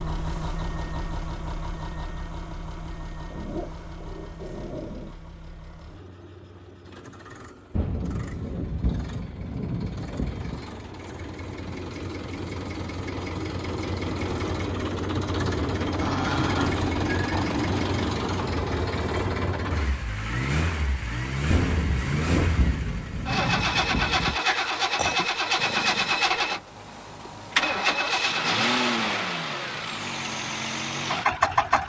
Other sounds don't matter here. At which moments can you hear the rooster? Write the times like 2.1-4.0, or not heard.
not heard.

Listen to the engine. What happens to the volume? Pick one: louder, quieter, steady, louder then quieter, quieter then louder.
louder.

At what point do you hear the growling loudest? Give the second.
16 s.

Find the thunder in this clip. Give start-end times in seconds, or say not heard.
7.7-10.6, 21.4-24.4.